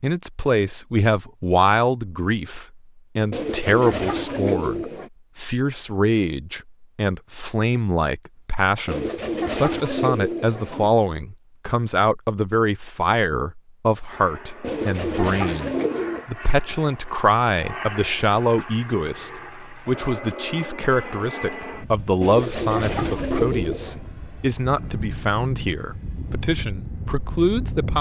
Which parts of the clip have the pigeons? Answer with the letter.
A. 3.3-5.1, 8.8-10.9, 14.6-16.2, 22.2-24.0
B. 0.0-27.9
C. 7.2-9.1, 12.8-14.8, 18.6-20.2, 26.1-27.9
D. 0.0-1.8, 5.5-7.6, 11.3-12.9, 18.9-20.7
A.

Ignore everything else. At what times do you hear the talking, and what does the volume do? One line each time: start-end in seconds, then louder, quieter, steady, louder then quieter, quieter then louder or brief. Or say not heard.
0.0-27.9 steady.